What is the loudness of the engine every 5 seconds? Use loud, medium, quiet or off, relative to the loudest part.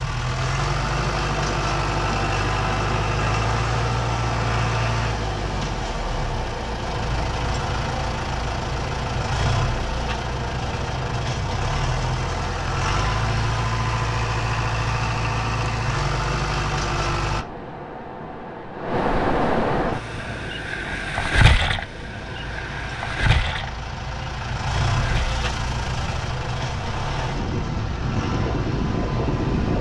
loud, loud, loud, loud, medium, medium.